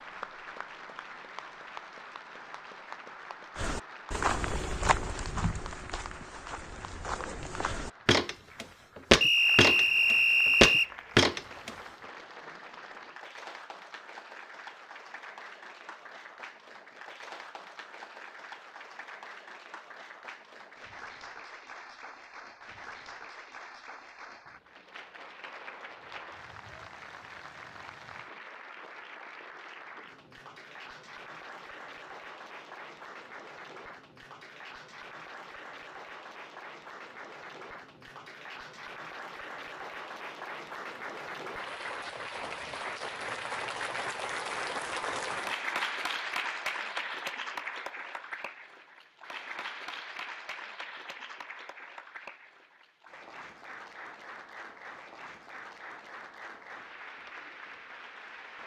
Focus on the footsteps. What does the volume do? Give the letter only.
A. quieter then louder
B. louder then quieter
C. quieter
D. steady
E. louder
A.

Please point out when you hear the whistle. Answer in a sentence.
The whistle can be heard from 9.2 to 10.9 s.